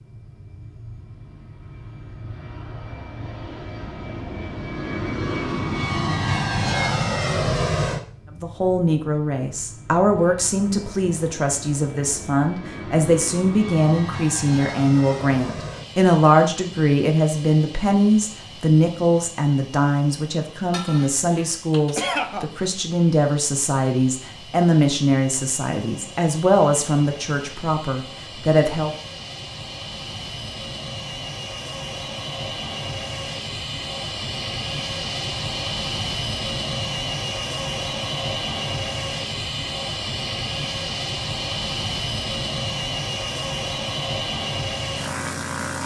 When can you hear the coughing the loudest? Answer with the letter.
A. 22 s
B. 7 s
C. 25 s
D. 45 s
A.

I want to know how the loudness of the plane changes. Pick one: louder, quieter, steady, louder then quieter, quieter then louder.
quieter then louder.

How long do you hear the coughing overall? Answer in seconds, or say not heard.
2 s.